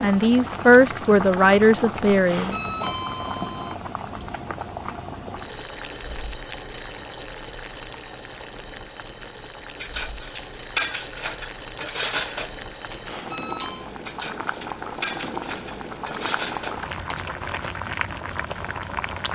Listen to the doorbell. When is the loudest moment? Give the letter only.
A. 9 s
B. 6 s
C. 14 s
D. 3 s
D.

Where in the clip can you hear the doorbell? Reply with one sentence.
You can hear the doorbell from 2.2 to 3.8 s and from 13.0 to 13.9 s.